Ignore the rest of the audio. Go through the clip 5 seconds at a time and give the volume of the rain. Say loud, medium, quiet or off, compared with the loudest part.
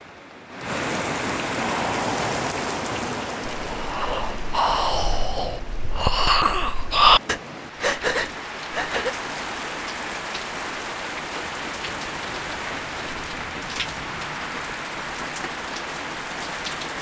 loud, medium, loud, loud.